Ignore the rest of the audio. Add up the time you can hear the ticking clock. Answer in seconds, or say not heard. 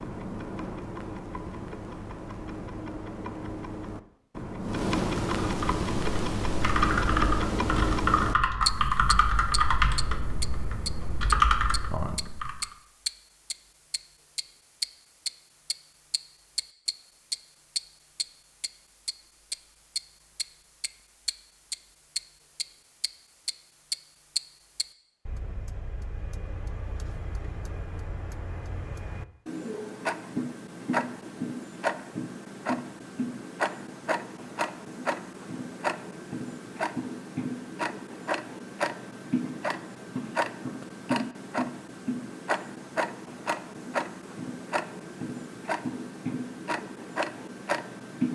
48 s.